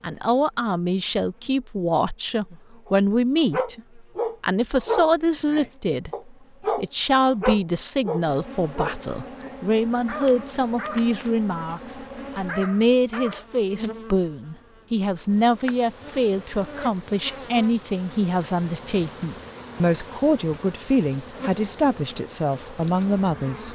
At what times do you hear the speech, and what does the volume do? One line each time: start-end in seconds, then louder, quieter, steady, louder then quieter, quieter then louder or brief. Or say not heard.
0.0-23.6 steady.